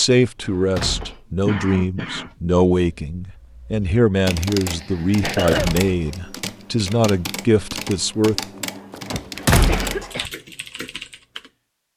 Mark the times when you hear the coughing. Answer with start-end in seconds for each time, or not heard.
0.5-2.4, 4.6-5.7, 8.6-10.3.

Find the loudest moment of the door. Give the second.
10 s.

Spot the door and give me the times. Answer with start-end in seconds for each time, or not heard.
0.2-1.2, 5.0-6.2, 8.9-10.1.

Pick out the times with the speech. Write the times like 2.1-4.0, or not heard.
0.0-8.7.